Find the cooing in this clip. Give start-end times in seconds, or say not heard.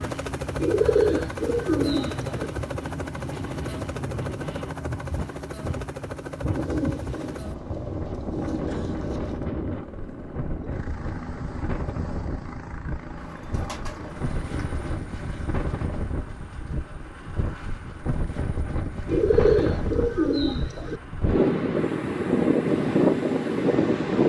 0.6-2.5, 6.5-9.4, 13.2-15.0, 19.1-21.0.